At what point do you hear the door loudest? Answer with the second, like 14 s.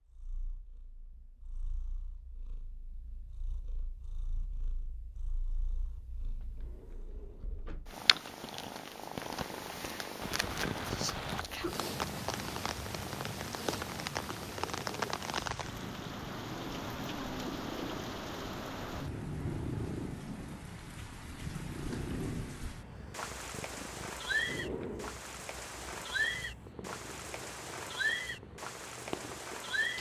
25 s.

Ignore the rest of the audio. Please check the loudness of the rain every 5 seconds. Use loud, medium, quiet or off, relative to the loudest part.
off, off, loud, loud, loud, loud.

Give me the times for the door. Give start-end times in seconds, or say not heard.
6.4-8.0, 14.4-15.2, 24.3-25.1.